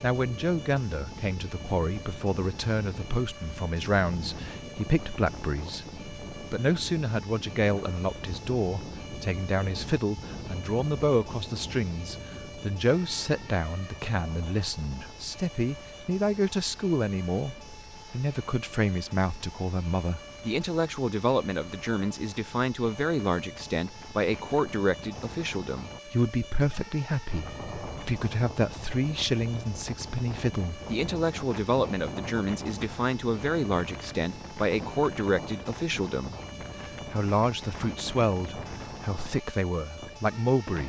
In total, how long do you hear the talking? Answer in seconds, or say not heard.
41 s.